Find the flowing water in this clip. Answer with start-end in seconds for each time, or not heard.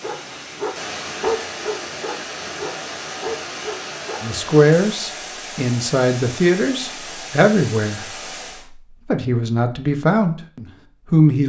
0.0-8.7.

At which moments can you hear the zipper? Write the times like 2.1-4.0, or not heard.
not heard.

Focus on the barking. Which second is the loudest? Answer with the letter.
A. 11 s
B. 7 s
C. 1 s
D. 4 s
C.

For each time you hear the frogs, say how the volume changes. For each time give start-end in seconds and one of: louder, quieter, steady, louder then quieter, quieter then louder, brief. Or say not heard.
not heard.